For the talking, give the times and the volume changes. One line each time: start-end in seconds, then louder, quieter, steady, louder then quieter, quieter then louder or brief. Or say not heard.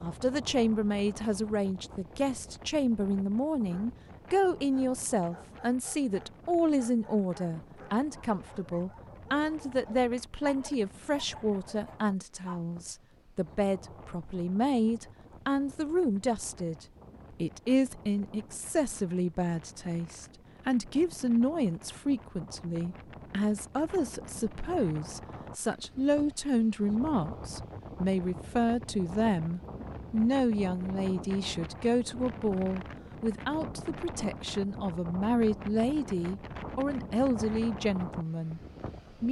0.0-38.6 steady.